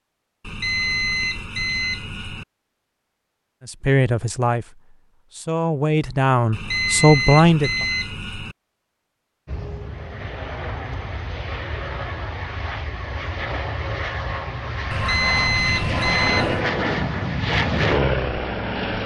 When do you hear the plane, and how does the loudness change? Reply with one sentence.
The plane can be heard from 9.4 to 19.0 s, getting louder.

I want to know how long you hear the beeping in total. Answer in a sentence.
You can hear the beeping for 6 seconds altogether.